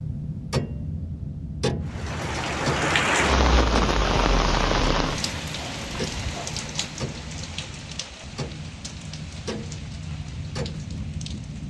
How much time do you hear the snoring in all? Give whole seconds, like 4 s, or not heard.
not heard.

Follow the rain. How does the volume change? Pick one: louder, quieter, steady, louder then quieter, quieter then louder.
quieter.